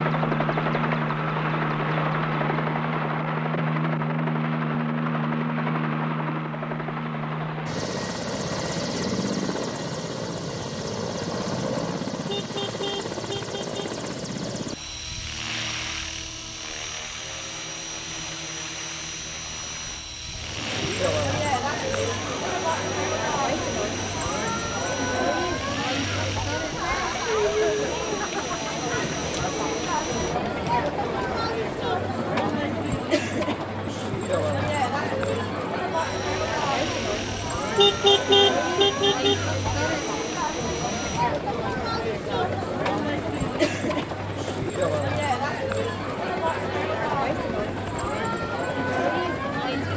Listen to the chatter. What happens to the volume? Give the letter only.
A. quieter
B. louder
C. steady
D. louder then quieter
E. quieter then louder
C.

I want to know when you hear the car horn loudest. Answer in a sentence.
The volume of the car horn peaks at 38 seconds.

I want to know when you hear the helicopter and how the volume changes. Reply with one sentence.
The helicopter can be heard from 0.0 to 49.9 s, getting quieter.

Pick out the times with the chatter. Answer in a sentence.
You can hear the chatter from 20.3 to 49.9 s.